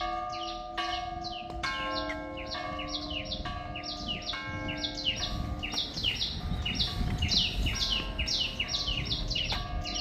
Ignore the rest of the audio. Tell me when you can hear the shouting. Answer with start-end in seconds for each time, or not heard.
not heard.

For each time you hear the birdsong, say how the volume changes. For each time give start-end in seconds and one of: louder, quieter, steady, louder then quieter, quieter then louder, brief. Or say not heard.
0.0-9.9 louder.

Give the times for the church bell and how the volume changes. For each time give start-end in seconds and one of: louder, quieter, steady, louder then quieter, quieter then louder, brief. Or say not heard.
0.0-9.9 quieter.